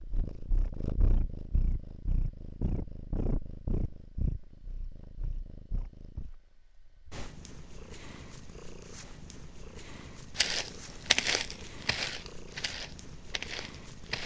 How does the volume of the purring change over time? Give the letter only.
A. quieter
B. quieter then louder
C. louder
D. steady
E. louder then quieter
A.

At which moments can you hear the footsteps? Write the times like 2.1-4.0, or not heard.
10.3-14.2.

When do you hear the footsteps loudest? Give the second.
11 s.